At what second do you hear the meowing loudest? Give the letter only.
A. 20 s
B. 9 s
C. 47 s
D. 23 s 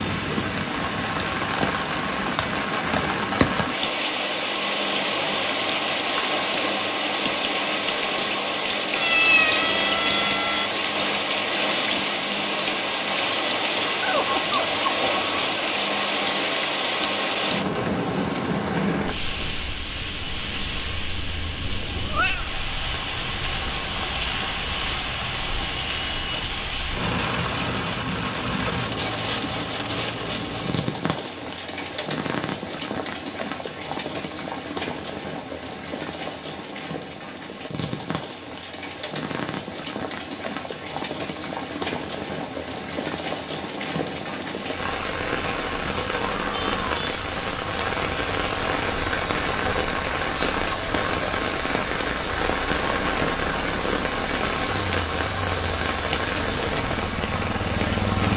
B.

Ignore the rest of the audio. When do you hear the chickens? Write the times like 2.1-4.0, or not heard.
14.0-15.4.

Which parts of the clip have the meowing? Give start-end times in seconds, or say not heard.
8.9-10.7, 21.6-22.4, 46.1-47.0.